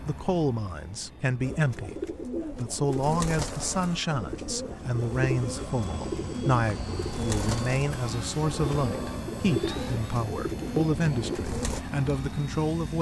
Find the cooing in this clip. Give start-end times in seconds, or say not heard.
1.4-11.8.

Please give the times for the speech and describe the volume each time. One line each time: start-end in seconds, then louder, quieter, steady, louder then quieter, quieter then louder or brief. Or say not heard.
0.1-12.9 steady.